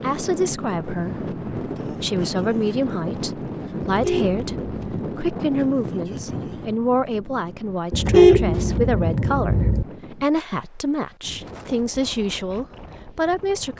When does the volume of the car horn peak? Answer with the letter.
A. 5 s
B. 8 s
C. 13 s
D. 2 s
B.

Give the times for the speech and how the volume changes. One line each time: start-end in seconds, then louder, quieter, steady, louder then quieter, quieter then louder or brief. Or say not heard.
0.0-13.7 steady.